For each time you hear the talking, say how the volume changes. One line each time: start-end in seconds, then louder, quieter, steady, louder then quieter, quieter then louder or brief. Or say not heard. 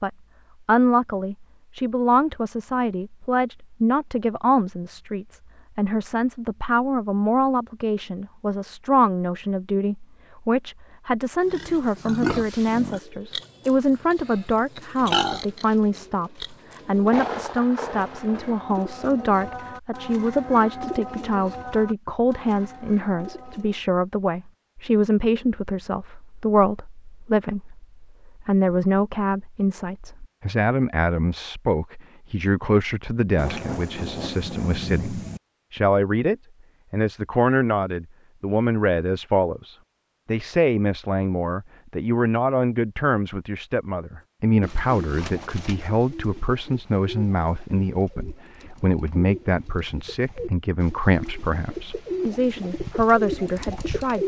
0.0-54.2 steady.